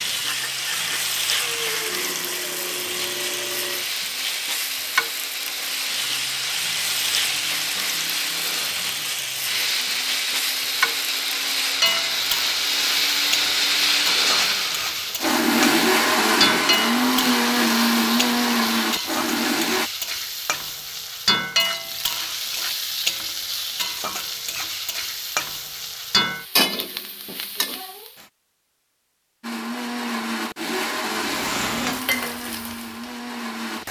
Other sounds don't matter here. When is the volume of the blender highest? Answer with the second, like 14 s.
16 s.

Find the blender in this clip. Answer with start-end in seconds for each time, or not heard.
0.0-19.9, 29.4-33.8.